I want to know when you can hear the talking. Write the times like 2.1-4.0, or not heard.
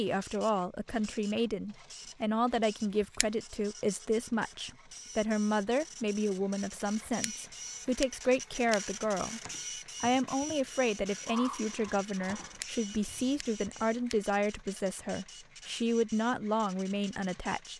0.0-9.4, 10.0-17.7.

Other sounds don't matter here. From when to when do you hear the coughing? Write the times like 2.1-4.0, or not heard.
not heard.